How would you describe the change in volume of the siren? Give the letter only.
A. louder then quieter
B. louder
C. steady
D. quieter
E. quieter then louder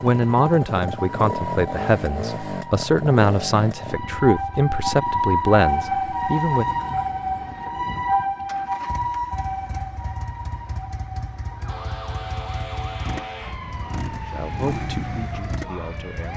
A.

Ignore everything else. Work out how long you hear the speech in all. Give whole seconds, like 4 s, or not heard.
9 s.